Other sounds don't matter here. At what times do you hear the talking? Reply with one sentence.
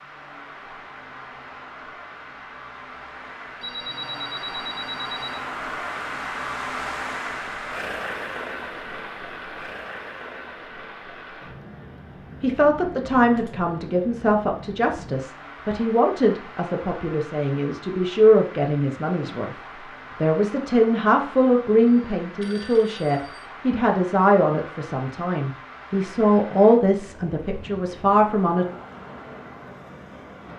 The talking can be heard from 12.4 to 19.6 s and from 20.2 to 28.6 s.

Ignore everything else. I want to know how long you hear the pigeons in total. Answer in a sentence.
You can't hear the pigeons here.